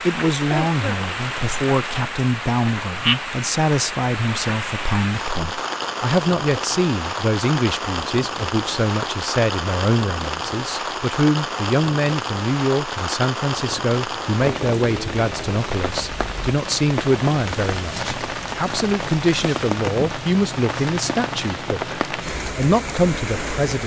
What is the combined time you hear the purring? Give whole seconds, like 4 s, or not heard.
not heard.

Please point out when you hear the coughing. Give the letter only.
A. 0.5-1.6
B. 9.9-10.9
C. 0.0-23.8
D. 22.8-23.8
A.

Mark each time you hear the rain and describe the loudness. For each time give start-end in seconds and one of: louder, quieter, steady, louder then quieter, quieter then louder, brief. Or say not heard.
0.0-23.8 steady.